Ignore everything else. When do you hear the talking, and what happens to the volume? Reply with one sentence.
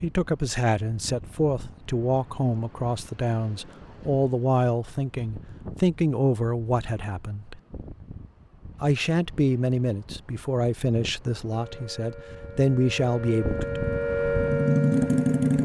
The talking can be heard from 0.0 to 7.6 s, at a steady volume; and from 8.8 to 13.8 s, getting quieter then louder.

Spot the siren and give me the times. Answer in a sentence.
You can hear the siren from 11.5 to 15.6 s.